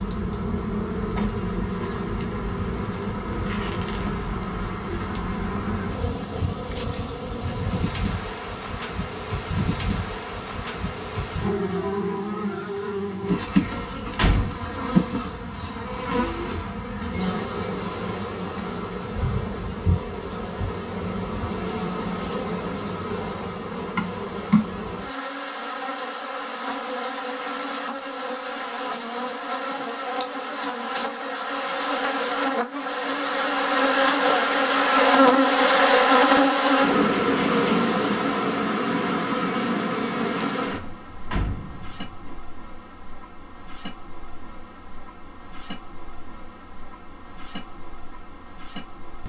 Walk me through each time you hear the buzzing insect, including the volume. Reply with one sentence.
You can hear the buzzing insect from 0.0 to 49.2 s, getting louder then quieter.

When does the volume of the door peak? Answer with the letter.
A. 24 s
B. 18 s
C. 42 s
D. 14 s
D.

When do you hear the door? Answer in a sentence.
You can hear the door from 13.6 to 14.6 s and from 40.7 to 42.4 s.